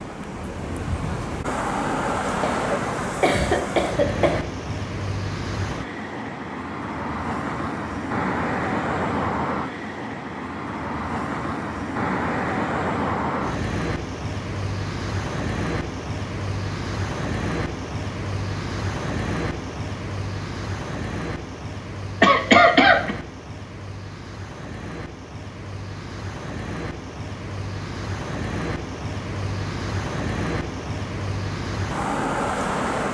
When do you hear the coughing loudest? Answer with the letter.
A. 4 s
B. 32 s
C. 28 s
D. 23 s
D.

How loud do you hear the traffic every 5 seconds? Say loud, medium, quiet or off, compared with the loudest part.
loud, loud, loud, loud, medium, medium, loud.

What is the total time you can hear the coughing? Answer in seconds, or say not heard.
3 s.